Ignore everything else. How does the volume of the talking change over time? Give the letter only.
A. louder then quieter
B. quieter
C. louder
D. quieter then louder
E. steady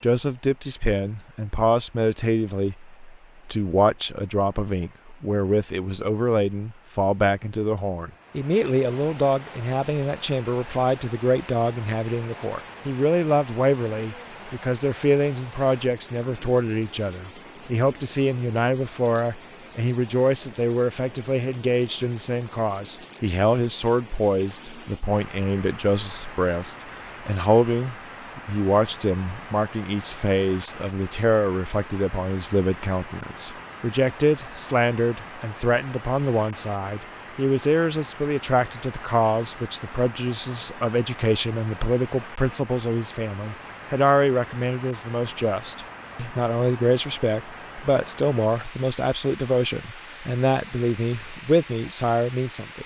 E.